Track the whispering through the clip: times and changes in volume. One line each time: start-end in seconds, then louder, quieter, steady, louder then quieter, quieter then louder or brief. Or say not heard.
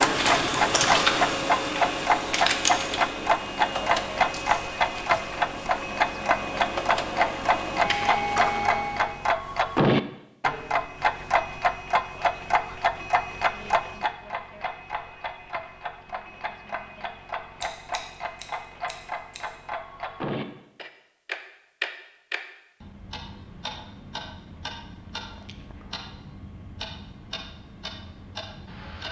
not heard.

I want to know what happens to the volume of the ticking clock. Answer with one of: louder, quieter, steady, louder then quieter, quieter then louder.
quieter.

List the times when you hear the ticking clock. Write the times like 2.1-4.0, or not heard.
0.0-29.0.